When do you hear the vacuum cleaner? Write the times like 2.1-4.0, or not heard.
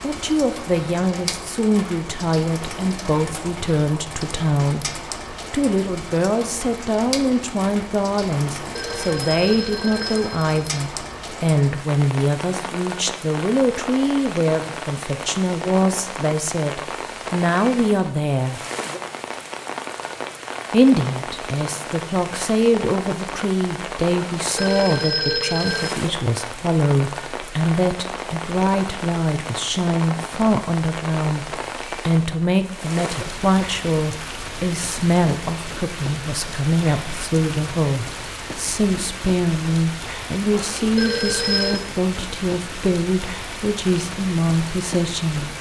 not heard.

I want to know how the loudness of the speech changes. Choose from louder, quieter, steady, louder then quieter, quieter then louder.
steady.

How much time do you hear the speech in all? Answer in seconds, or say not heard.
43 s.